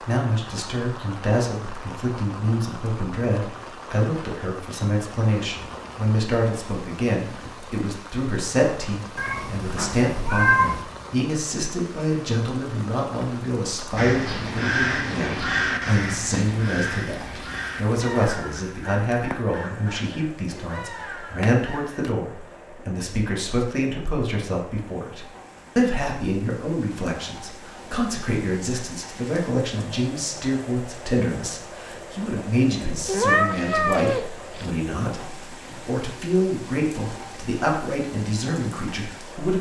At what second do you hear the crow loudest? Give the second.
15 s.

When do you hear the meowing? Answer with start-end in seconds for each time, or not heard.
9.2-10.8, 21.4-22.1, 33.0-34.7.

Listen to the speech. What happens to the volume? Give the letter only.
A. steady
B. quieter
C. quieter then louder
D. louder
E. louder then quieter
A.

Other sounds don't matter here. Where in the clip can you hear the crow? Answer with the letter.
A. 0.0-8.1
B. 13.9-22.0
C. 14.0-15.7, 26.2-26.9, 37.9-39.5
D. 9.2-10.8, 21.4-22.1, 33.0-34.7
B.